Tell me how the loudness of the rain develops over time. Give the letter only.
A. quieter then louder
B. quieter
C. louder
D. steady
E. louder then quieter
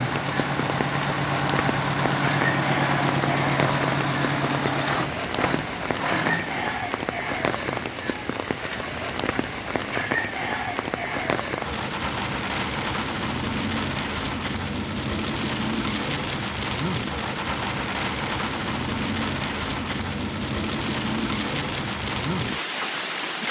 D.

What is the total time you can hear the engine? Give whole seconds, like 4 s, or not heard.
7 s.